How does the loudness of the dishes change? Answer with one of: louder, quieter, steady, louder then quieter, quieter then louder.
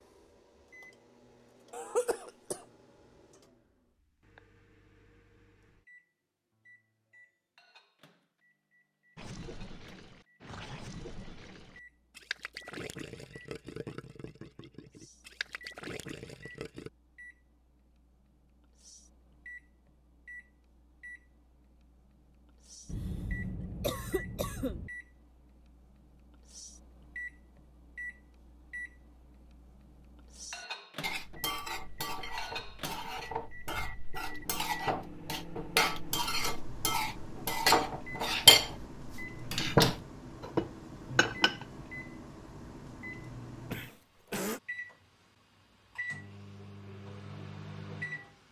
louder.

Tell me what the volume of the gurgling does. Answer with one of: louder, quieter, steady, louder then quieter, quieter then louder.
steady.